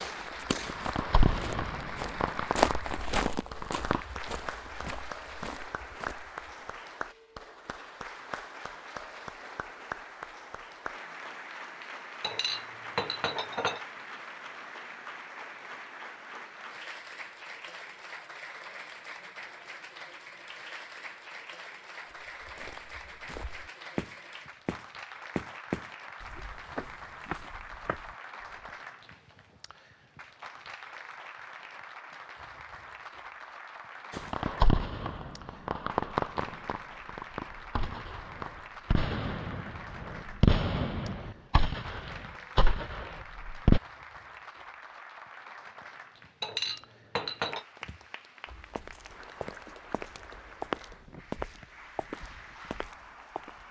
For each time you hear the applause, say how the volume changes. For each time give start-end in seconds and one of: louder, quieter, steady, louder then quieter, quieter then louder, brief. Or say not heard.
0.0-53.6 quieter.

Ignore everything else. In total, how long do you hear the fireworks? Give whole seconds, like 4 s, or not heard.
14 s.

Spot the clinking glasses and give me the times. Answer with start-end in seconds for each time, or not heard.
12.2-13.8, 46.4-47.6.